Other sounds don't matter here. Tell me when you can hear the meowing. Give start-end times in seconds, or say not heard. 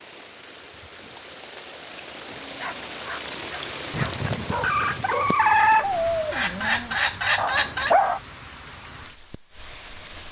not heard.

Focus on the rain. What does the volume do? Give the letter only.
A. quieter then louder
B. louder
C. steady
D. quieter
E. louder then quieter
E.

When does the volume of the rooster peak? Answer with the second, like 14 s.
6 s.